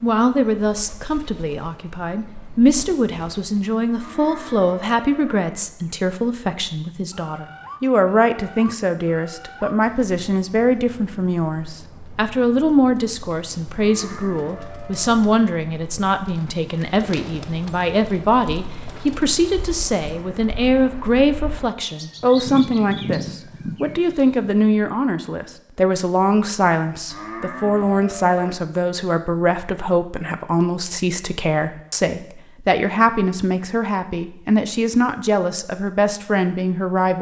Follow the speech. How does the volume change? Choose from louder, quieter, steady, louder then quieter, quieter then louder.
steady.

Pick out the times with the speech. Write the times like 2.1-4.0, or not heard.
0.0-37.1.